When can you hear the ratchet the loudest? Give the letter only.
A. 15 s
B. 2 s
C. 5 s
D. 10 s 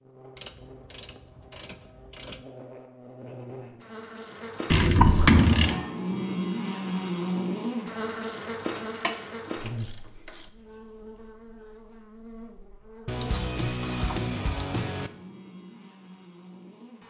C.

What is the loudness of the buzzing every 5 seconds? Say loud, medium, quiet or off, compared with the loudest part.
quiet, loud, quiet, quiet.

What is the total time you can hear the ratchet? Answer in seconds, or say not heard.
7 s.